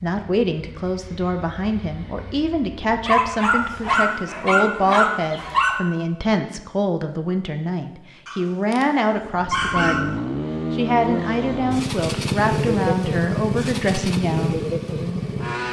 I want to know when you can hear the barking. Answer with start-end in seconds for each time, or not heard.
3.0-5.8, 8.2-10.1.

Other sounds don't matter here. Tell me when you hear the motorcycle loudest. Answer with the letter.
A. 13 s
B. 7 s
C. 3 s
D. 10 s
A.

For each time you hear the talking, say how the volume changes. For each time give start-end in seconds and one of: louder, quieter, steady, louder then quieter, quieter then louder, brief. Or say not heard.
0.0-14.6 steady.